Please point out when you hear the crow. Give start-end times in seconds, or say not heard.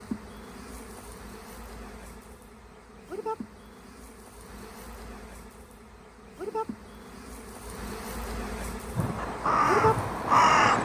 8.9-10.8.